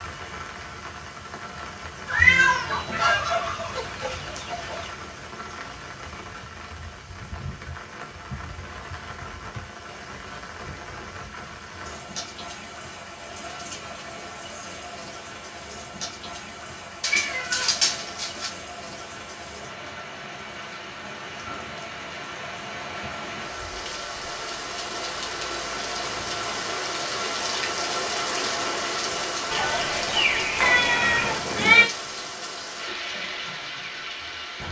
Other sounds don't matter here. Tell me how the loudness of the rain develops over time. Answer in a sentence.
The volume of the rain goes up.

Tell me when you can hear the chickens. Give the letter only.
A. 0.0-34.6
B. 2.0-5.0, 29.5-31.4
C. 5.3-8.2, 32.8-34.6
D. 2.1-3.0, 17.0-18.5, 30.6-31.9
B.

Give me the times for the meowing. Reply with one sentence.
You can hear the meowing from 2.1 to 3.0 s, from 17.0 to 18.5 s and from 30.6 to 31.9 s.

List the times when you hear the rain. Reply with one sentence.
The rain can be heard from 0.0 to 34.6 s.